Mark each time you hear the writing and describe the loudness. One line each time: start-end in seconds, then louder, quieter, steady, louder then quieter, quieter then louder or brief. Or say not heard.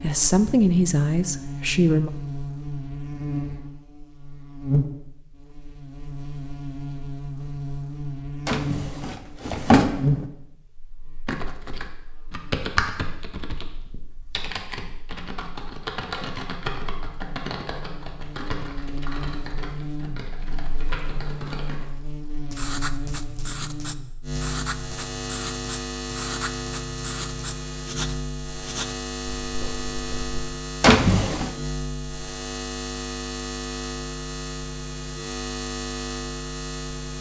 22.5-30.4 steady.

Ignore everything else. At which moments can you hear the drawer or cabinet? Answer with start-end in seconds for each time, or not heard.
8.4-10.2, 30.8-31.5.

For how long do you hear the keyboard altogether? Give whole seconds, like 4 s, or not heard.
11 s.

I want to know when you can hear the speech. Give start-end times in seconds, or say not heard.
0.0-2.1.